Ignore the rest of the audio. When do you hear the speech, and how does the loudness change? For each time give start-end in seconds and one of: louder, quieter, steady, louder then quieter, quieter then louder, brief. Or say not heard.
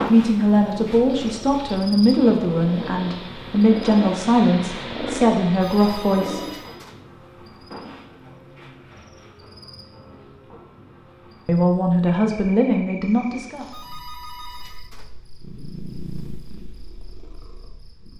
0.1-6.4 steady
11.4-13.7 brief.